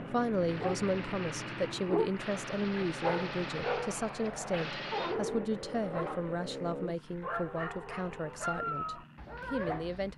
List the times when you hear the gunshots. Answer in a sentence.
You can hear the gunshots from 0.5 to 5.2 s.